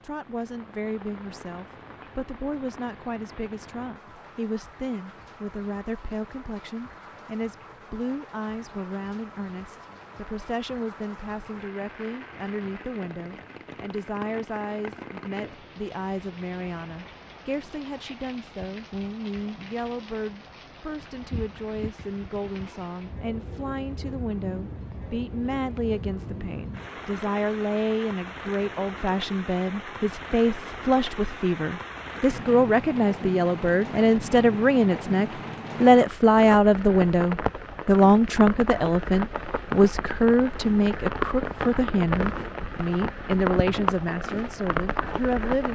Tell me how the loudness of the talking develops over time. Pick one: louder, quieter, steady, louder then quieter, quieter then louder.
louder.